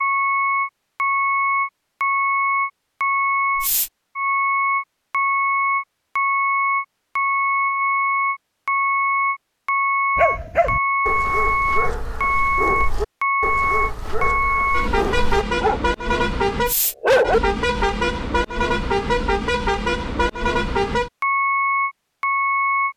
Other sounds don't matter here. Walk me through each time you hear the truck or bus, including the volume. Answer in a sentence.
The truck or bus can be heard from 0.0 to 22.9 s, at a steady volume.